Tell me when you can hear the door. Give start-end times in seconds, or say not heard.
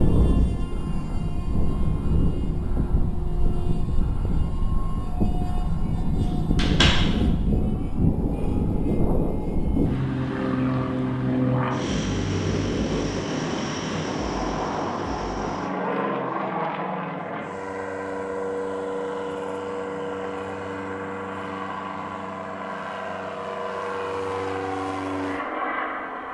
6.2-7.2.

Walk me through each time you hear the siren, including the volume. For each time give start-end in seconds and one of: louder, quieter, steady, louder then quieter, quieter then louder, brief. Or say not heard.
not heard.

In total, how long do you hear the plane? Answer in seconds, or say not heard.
26 s.